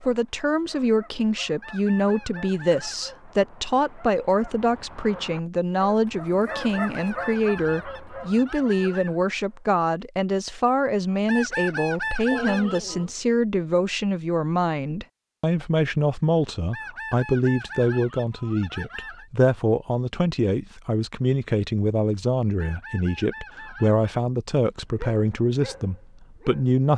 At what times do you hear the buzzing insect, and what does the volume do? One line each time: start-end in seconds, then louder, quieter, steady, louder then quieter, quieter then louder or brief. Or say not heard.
not heard.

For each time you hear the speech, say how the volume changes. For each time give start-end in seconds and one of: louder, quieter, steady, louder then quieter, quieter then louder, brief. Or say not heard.
0.0-26.9 steady.